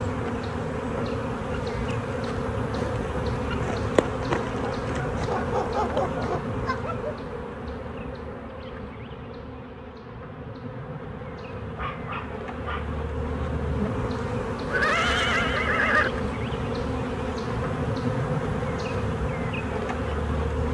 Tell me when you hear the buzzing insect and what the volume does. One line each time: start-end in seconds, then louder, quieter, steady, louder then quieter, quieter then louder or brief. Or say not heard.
0.0-20.6 quieter then louder.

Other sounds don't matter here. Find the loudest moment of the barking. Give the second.
6 s.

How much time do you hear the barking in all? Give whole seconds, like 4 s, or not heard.
3 s.